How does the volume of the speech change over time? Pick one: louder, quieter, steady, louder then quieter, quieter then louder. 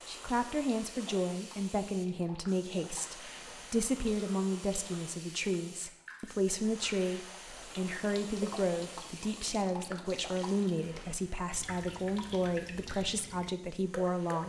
steady.